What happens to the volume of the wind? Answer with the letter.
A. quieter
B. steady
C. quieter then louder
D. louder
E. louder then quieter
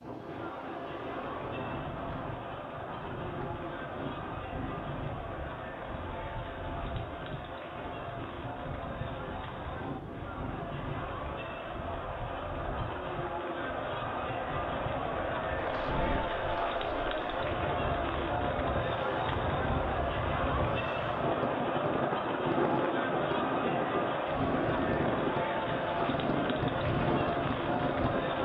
D.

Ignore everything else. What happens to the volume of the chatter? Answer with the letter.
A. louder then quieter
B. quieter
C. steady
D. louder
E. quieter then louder
D.